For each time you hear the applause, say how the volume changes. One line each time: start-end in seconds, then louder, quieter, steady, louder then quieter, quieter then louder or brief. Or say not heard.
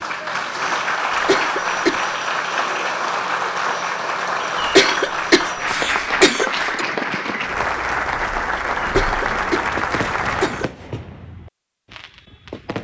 0.0-10.7 steady.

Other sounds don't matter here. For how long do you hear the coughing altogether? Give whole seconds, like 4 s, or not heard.
5 s.